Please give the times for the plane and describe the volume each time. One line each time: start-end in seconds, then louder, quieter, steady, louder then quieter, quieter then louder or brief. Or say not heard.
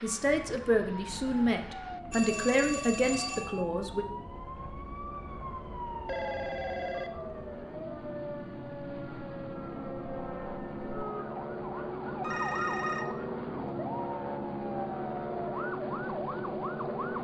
0.0-17.1 louder.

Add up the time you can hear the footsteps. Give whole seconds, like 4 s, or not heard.
not heard.